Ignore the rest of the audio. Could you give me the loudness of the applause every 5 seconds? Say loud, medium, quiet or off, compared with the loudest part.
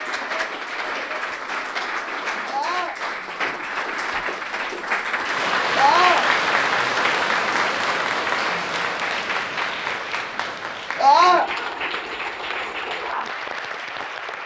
medium, loud, medium.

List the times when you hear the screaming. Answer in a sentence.
You can hear the screaming from 2.5 to 3.0 s, from 5.8 to 6.2 s and from 10.9 to 11.5 s.